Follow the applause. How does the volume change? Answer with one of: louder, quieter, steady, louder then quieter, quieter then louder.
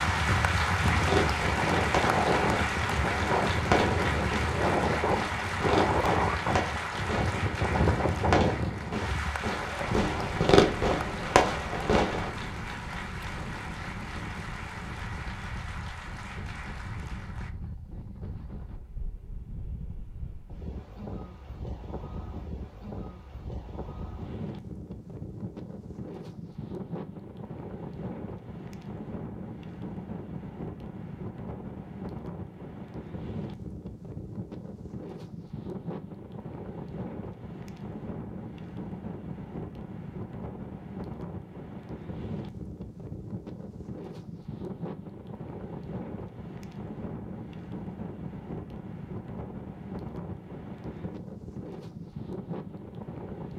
quieter.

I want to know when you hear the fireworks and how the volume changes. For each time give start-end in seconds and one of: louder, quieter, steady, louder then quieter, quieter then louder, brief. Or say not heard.
0.9-12.3 louder.